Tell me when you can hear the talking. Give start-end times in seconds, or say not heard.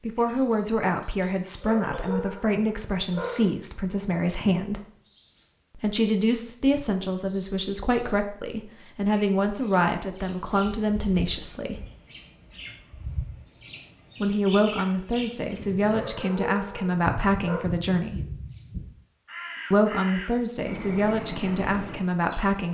0.0-4.8, 5.8-11.8, 14.2-18.2, 19.7-22.6.